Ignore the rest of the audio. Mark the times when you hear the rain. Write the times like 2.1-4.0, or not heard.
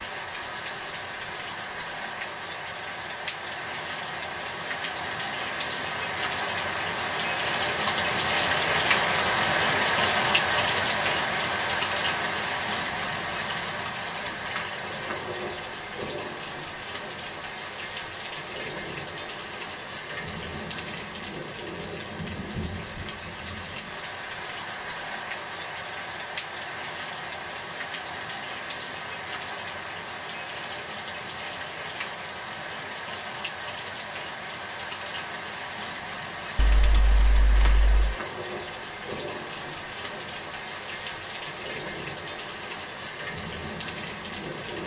0.0-44.8.